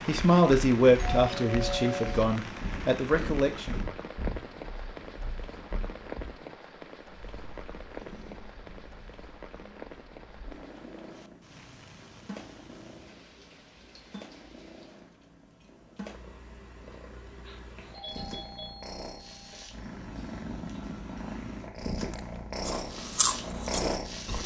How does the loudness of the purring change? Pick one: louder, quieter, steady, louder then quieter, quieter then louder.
quieter then louder.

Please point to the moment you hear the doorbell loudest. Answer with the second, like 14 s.
2 s.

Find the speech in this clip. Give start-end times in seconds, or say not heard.
0.1-3.8.